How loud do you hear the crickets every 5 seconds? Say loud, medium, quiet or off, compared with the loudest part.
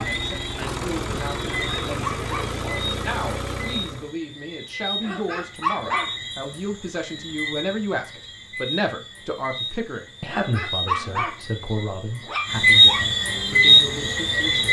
quiet, quiet, loud.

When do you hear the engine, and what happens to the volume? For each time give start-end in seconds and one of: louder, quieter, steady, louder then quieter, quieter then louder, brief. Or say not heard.
0.0-4.2 steady.